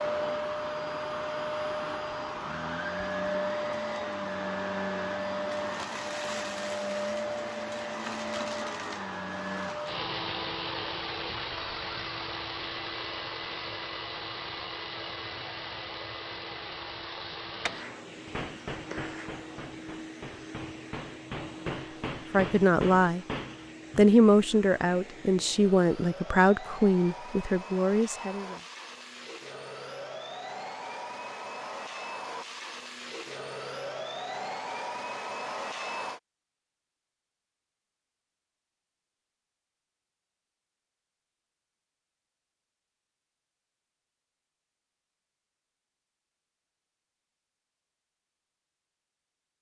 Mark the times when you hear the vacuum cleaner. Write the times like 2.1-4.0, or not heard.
0.0-36.2.